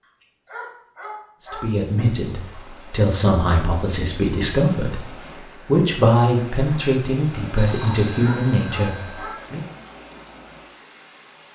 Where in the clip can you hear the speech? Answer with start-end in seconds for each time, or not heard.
1.4-9.7.